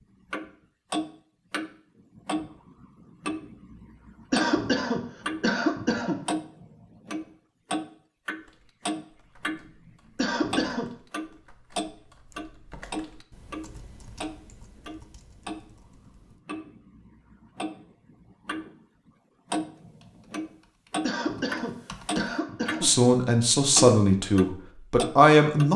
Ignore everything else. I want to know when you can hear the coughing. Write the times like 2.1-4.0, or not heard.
4.3-6.2, 10.2-10.9, 21.0-22.9.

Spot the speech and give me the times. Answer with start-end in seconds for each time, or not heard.
22.8-25.7.